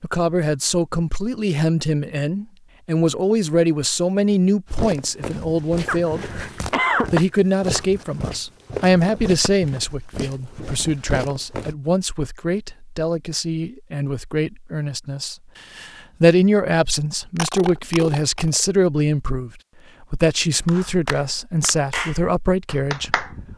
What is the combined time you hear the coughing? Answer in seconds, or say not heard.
3 s.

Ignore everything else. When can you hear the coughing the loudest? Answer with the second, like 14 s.
7 s.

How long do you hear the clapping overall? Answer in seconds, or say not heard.
3 s.